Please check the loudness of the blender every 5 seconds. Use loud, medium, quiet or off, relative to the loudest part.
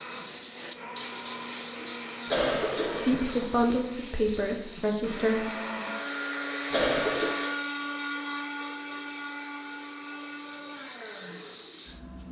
medium, loud, medium.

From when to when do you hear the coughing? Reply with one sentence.
The coughing can be heard from 2.2 to 3.8 s and from 6.7 to 7.3 s.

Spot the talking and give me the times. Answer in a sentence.
You can hear the talking from 3.0 to 5.5 s.